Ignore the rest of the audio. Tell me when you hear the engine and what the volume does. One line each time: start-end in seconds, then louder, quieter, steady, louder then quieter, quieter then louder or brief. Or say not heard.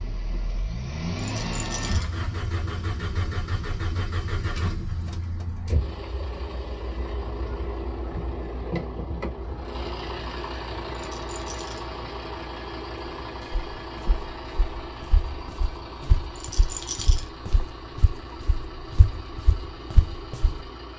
0.0-20.9 quieter.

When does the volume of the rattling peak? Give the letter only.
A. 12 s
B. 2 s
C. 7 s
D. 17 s
D.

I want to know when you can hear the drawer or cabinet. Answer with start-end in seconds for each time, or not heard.
not heard.